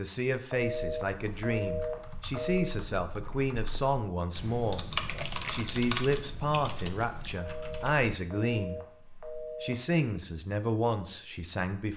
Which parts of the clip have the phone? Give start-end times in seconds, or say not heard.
0.5-2.8, 7.3-9.9.